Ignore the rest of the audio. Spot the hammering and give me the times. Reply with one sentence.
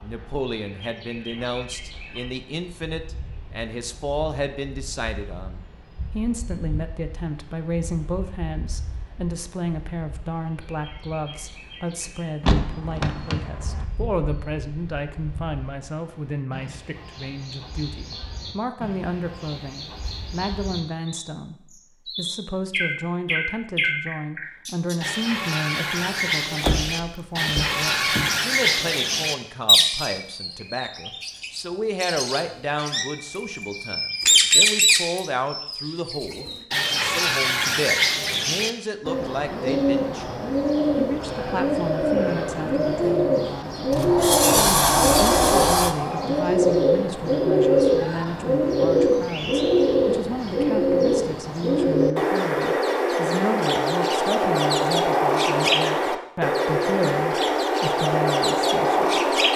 The hammering can't be heard in this clip.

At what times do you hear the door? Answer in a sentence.
You can hear the door from 12.4 to 13.8 s, from 26.6 to 28.2 s and from 43.9 to 46.0 s.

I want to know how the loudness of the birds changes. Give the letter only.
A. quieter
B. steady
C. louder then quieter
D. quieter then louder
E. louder
E.